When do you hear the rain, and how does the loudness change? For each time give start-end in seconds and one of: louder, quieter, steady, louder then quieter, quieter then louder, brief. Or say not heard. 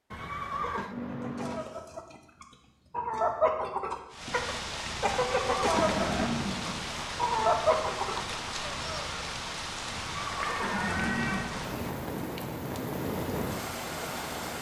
4.1-14.5 steady.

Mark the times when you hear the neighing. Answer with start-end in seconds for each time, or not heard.
0.1-0.9, 5.1-7.0, 9.9-11.9.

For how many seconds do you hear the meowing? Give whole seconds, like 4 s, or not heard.
3 s.